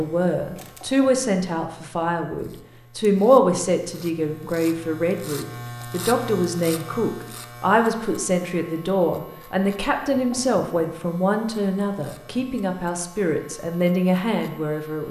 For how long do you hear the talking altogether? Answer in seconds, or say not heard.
15 s.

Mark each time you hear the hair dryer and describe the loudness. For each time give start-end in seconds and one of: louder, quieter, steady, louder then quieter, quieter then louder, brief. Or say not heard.
not heard.